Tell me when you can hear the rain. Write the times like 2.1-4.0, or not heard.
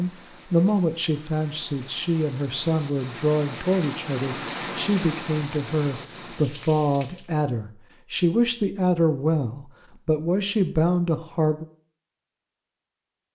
0.0-7.3.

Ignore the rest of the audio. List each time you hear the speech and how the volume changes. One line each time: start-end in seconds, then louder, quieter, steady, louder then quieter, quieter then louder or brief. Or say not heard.
0.0-11.7 steady.